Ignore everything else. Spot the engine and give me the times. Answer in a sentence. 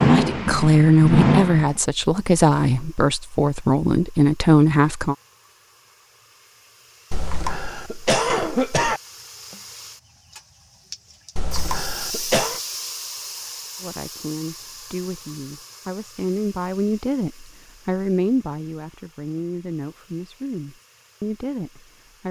The engine can be heard from 0.0 to 1.8 s.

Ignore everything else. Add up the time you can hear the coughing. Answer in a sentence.
You can hear the coughing for 3 seconds altogether.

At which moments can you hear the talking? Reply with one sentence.
The talking can be heard from 0.1 to 5.2 s and from 13.8 to 22.2 s.